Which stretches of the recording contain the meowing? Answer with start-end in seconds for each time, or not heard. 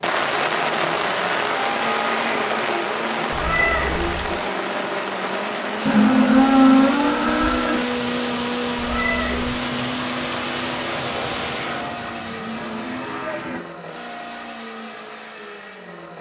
3.3-4.3, 8.8-9.4.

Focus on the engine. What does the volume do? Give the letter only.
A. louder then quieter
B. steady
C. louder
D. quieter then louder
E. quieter
A.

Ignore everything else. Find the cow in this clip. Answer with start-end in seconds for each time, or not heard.
1.5-2.8, 5.8-7.8, 11.6-13.6.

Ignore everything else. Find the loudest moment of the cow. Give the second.
7 s.